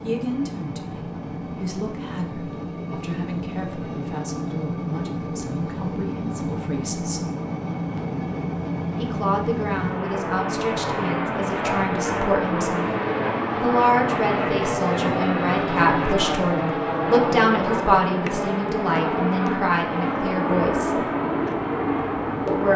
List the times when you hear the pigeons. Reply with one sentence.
The pigeons can be heard from 20.4 to 22.7 s.